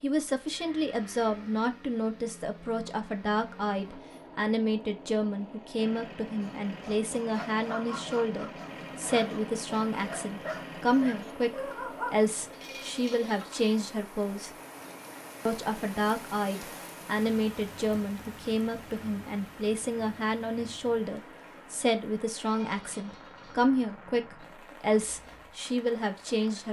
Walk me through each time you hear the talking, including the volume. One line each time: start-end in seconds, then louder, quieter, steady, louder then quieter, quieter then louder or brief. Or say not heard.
0.0-14.5 steady
15.4-26.6 steady.